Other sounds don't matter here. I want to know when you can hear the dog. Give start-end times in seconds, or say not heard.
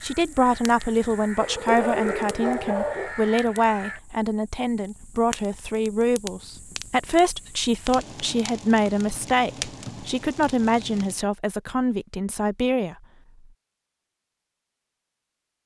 1.4-3.1.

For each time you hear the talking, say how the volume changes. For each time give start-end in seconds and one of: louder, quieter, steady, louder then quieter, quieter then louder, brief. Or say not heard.
0.0-12.9 steady.